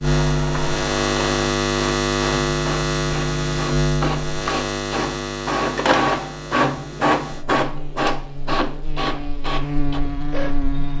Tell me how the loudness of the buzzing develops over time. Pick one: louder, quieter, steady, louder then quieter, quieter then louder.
quieter then louder.